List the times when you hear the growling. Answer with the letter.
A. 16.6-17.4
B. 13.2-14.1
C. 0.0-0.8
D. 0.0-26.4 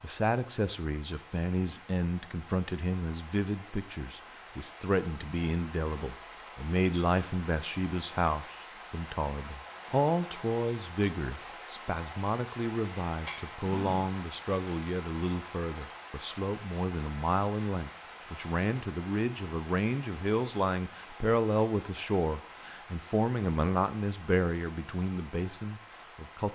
B.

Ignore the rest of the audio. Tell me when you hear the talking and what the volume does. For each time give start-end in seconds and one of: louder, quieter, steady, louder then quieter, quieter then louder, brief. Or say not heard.
0.0-26.4 steady.